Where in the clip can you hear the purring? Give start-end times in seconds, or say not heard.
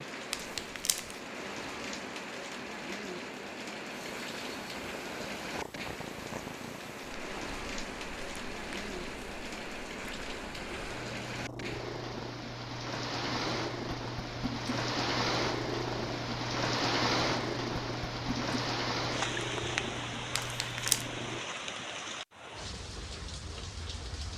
3.9-21.4.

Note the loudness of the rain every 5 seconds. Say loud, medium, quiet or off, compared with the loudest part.
medium, medium, medium, loud, medium.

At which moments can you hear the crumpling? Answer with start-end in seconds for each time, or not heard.
0.3-1.2, 20.4-21.1.